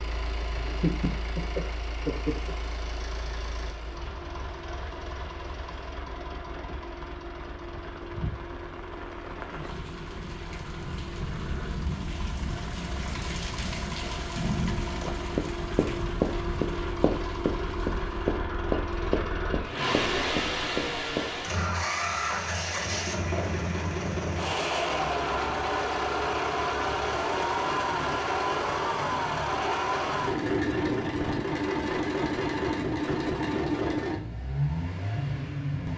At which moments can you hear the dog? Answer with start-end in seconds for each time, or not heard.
not heard.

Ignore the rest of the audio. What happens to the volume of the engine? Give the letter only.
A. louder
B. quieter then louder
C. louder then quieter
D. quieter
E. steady
A.